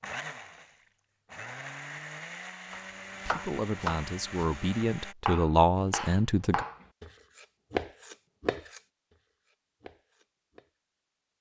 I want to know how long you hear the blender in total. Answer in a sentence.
The blender can be heard for 5 seconds in total.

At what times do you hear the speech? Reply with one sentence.
The speech can be heard from 3.2 to 6.7 s.